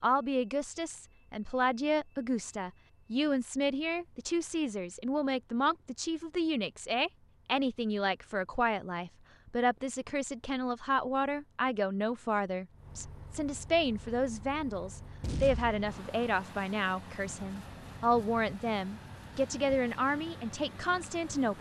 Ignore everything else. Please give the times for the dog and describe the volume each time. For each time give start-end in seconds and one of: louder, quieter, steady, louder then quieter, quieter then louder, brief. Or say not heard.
not heard.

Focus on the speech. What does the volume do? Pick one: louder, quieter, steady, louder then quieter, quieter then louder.
steady.